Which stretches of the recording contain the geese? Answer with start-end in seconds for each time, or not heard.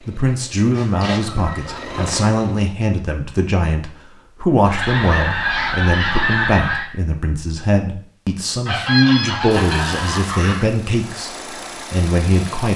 0.7-2.2, 4.7-6.8, 8.7-10.7.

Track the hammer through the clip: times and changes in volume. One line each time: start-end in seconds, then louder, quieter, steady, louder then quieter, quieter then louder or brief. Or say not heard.
not heard.